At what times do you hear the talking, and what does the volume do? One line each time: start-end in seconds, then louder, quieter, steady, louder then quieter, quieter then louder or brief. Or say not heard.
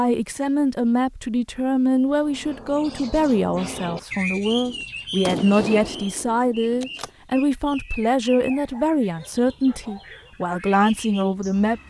0.0-11.8 steady.